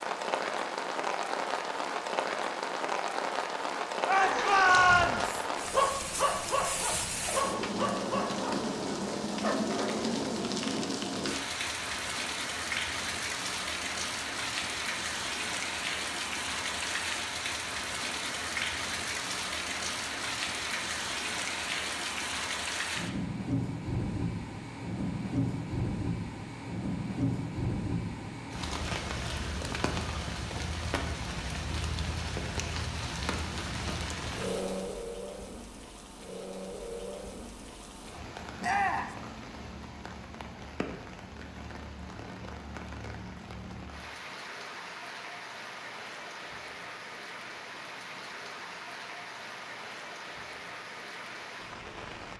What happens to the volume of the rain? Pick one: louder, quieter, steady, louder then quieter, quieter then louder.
quieter.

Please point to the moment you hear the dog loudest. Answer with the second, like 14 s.
6 s.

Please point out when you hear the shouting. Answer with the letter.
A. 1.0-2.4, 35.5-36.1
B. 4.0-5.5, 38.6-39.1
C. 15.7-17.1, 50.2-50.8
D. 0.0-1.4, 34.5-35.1
B.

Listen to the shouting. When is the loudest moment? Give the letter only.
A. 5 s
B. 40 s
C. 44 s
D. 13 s
A.